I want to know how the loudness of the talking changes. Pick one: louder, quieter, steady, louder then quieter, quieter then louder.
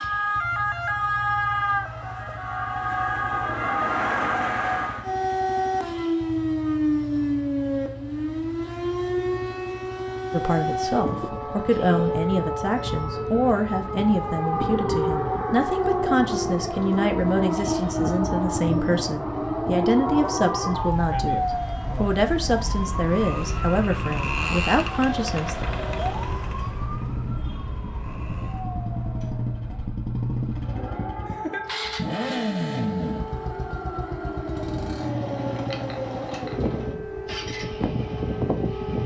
steady.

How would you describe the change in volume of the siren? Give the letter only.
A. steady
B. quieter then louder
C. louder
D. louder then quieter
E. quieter
E.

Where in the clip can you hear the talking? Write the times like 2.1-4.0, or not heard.
10.3-25.6.